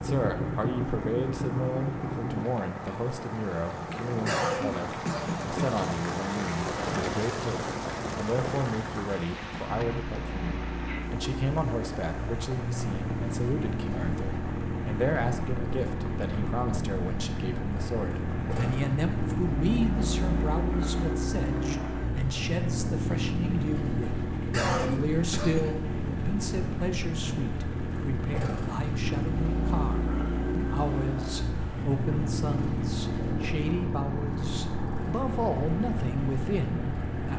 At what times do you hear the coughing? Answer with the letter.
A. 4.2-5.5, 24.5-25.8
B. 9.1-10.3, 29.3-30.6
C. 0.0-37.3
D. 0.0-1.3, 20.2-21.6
A.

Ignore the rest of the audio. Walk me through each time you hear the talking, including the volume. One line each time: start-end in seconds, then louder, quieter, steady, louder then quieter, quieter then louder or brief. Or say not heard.
0.0-37.3 steady.